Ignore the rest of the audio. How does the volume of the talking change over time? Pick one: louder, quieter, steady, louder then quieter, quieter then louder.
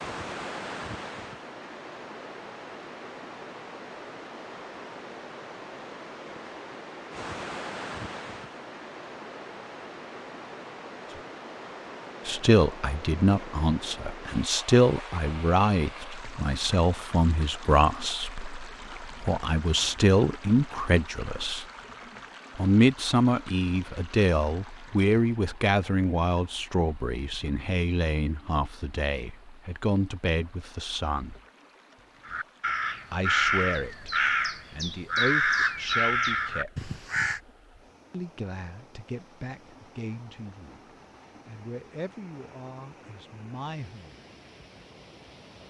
quieter.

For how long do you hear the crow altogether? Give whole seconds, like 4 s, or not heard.
5 s.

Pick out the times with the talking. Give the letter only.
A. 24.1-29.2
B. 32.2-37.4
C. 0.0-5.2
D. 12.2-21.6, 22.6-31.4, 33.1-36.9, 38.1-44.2
D.